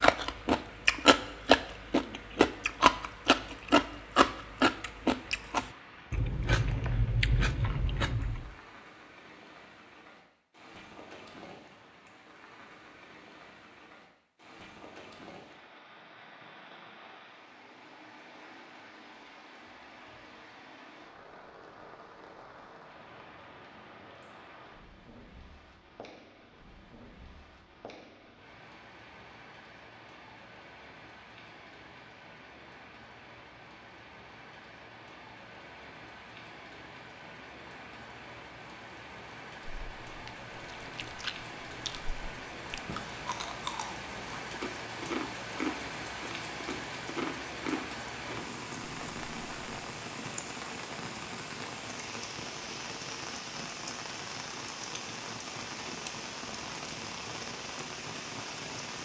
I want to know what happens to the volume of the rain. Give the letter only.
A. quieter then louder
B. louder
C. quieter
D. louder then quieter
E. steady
B.